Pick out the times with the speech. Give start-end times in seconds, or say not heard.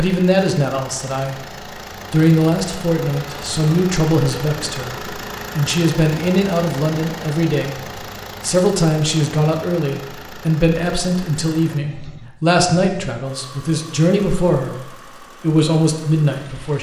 0.0-1.4, 2.1-7.8, 8.4-16.7.